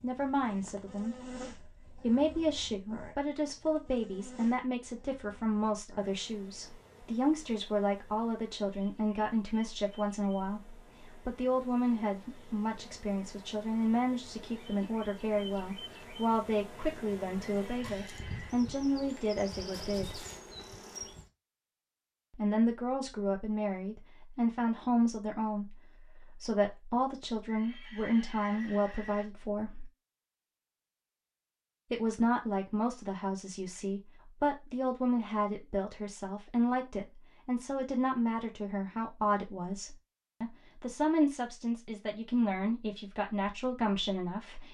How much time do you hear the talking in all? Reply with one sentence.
You can hear the talking for 40 seconds altogether.